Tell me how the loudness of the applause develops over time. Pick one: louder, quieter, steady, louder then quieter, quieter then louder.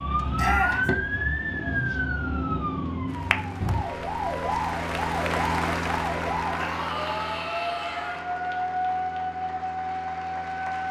louder then quieter.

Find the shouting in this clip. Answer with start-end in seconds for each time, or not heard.
0.3-0.9, 6.5-8.2.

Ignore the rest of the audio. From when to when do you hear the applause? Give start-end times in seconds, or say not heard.
3.0-10.8.